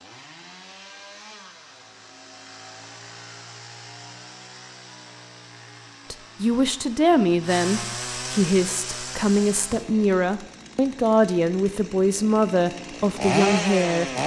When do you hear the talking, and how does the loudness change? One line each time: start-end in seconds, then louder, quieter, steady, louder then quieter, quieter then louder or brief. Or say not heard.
6.1-14.1 steady.